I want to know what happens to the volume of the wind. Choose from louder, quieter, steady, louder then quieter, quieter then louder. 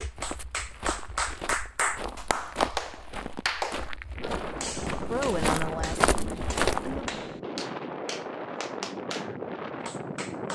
steady.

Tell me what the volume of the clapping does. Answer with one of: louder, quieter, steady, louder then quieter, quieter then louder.
quieter.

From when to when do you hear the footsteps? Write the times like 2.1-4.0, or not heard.
0.0-7.1.